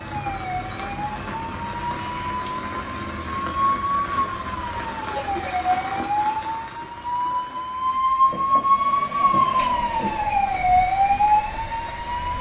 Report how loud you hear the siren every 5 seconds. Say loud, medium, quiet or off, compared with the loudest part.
medium, loud, loud.